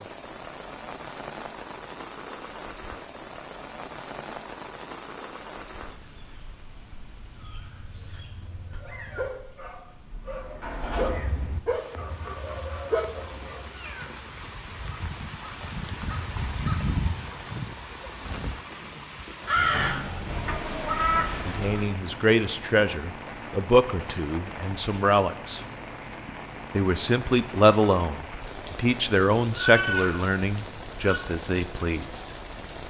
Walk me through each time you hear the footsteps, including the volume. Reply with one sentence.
You can't hear the footsteps here.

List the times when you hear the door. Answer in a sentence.
The door can be heard from 10.1 to 11.2 s and from 19.6 to 20.8 s.